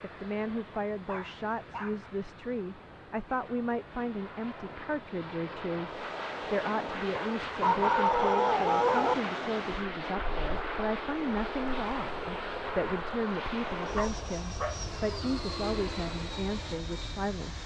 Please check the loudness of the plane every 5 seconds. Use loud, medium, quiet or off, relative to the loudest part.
quiet, loud, loud, loud.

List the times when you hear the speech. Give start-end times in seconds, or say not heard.
0.0-17.6.